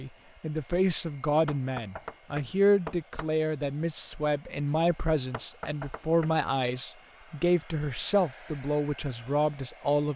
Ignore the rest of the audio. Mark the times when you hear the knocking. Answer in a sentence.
You can hear the knocking from 1.4 to 3.3 s and from 5.3 to 6.3 s.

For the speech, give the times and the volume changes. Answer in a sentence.
You can hear the speech from 0.0 to 10.1 s, at a steady volume.